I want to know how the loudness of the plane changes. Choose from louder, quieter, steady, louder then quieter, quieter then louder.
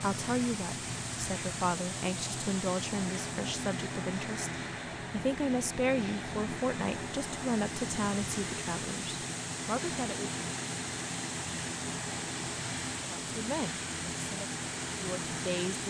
steady.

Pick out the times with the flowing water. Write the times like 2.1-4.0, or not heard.
0.0-15.8.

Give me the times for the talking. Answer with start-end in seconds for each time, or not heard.
0.0-10.4, 13.0-15.8.